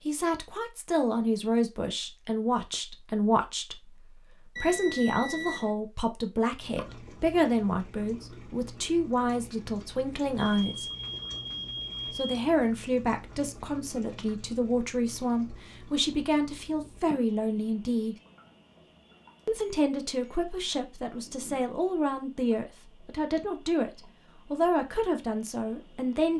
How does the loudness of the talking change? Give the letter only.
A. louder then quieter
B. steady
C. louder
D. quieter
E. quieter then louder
B.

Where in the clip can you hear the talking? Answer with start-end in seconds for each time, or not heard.
0.1-10.9, 12.1-18.1, 19.4-26.3.